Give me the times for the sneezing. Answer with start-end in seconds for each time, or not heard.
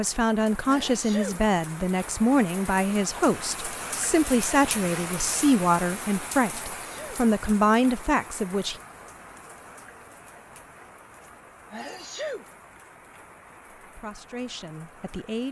0.7-1.4, 6.7-7.2, 11.7-12.4.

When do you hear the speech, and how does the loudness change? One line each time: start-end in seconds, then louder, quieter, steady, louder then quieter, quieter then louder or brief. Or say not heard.
0.0-8.8 steady
13.8-15.4 brief.